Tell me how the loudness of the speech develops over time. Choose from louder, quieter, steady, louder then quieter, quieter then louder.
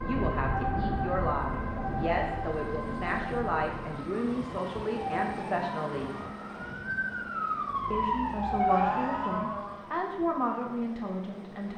steady.